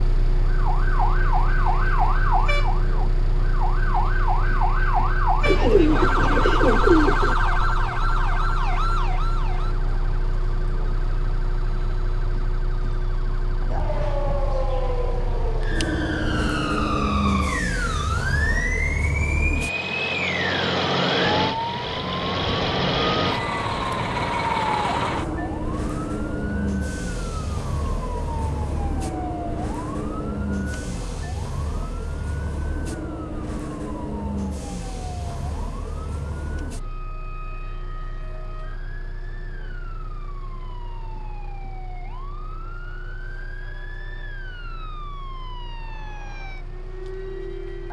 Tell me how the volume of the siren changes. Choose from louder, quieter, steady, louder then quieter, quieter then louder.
quieter.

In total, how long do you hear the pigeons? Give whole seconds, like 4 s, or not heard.
2 s.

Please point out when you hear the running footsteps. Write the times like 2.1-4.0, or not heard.
not heard.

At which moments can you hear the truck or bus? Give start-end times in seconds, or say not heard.
0.0-47.8.